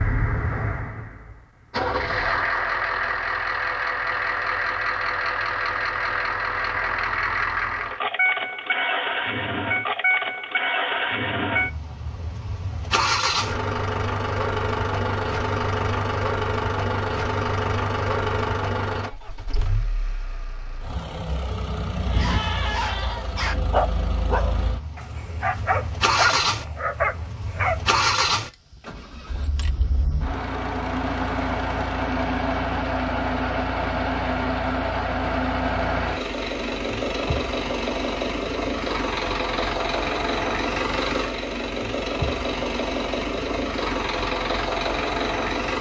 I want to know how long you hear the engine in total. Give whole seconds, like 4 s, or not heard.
46 s.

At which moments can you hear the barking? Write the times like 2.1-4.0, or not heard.
22.1-27.8.